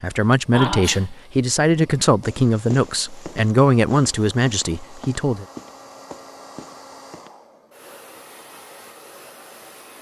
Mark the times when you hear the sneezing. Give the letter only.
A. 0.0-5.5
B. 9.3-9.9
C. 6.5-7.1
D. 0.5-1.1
D.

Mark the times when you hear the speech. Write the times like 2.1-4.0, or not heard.
0.0-5.5.